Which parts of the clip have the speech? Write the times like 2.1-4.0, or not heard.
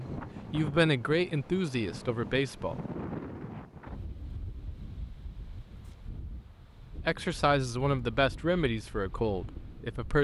0.0-2.8, 7.0-10.1.